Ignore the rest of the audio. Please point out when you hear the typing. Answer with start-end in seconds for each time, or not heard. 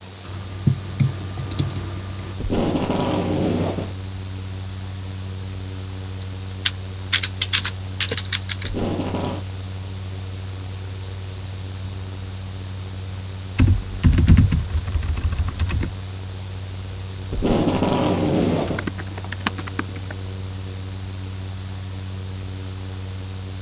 0.2-2.4, 6.7-8.7, 13.6-15.9, 18.6-20.1.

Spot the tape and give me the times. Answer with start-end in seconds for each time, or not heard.
2.4-4.0, 8.6-9.4, 17.3-18.9.